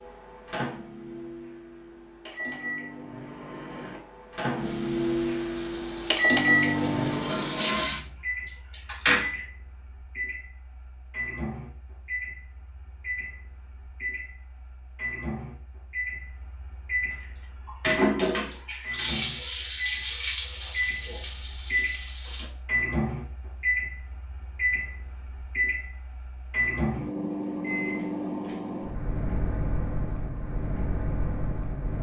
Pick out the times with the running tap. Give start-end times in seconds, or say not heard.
5.5-9.4, 17.1-22.5.